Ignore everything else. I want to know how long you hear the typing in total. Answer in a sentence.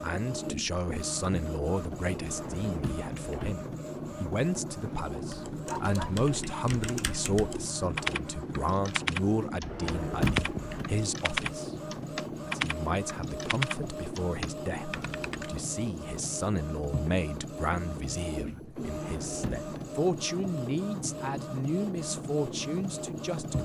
The typing can be heard for 10 seconds in total.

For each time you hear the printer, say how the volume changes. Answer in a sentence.
You can hear the printer from 0.0 to 23.5 s, at a steady volume.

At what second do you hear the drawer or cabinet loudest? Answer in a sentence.
The volume of the drawer or cabinet peaks at 10 seconds.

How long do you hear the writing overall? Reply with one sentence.
You can't hear the writing here.